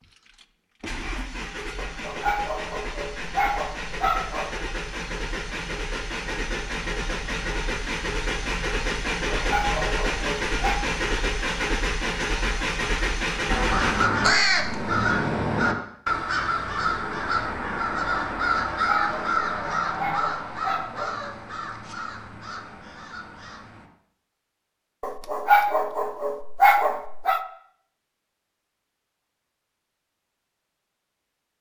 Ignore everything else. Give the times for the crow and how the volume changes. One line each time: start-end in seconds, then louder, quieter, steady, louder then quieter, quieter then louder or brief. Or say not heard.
13.4-23.9 quieter.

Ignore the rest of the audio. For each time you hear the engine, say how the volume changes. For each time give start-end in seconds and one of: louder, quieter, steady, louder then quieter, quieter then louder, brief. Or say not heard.
0.0-14.1 louder.